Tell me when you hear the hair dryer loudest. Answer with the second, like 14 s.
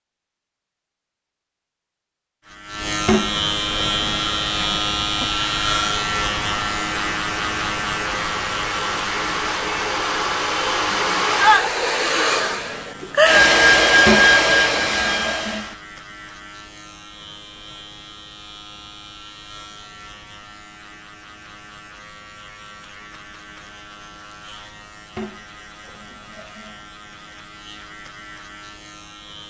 14 s.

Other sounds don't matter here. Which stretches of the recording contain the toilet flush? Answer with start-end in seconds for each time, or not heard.
3.0-4.2, 14.1-15.8, 25.1-26.9.